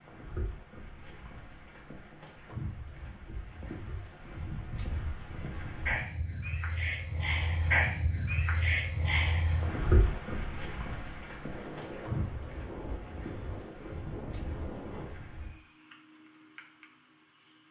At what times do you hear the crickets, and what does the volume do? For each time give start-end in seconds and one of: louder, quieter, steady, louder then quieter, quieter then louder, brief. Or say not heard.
0.0-17.6 louder then quieter.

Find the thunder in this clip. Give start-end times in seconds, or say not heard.
11.4-15.2.